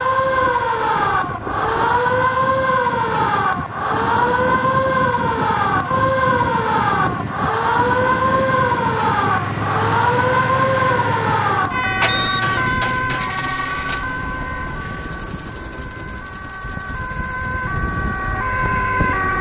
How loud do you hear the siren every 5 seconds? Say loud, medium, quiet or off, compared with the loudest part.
loud, loud, loud, medium.